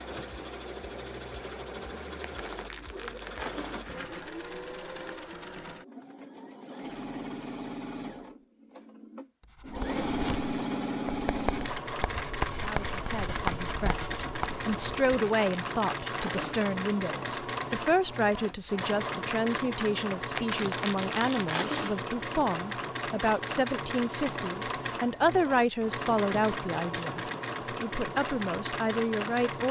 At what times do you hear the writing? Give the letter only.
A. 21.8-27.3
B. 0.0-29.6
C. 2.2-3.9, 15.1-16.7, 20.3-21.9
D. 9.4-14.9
D.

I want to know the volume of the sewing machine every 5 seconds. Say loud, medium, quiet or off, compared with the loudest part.
medium, medium, loud, loud, loud, loud.